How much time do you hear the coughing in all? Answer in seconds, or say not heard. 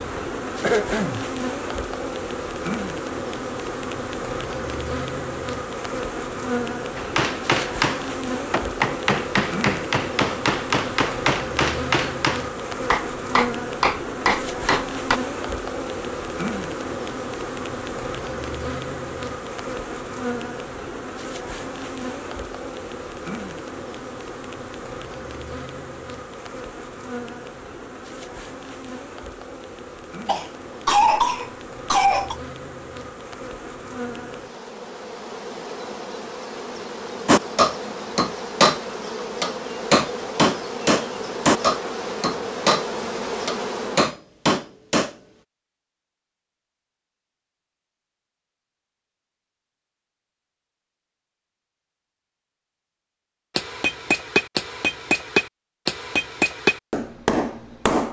3 s.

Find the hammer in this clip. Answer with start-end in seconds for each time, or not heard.
7.0-15.2, 37.2-38.8, 39.4-45.1, 53.5-58.0.